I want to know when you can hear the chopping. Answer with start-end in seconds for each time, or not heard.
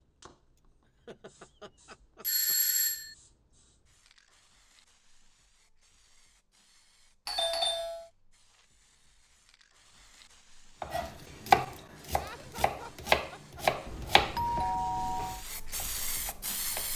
10.8-16.9.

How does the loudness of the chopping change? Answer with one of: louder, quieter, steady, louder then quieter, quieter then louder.
quieter.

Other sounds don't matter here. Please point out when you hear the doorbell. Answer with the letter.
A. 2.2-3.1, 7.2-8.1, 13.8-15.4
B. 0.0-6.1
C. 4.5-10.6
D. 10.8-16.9
A.